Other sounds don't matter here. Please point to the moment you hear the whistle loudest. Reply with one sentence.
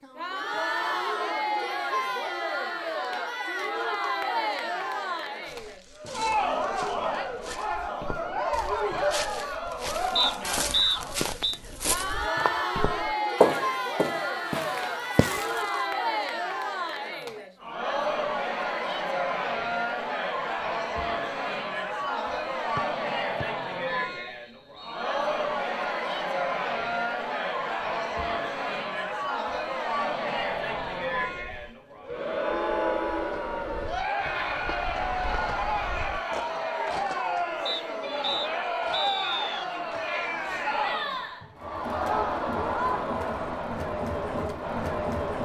The loudest moment of the whistle is at 11 seconds.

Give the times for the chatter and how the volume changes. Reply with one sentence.
The chatter can be heard from 0.0 to 45.4 s, at a steady volume.